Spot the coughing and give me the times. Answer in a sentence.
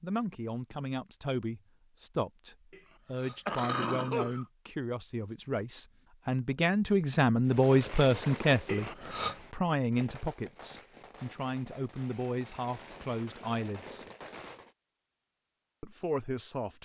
You can hear the coughing from 2.7 to 4.5 s and from 8.7 to 9.3 s.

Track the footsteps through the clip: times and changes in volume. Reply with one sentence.
You can't hear the footsteps here.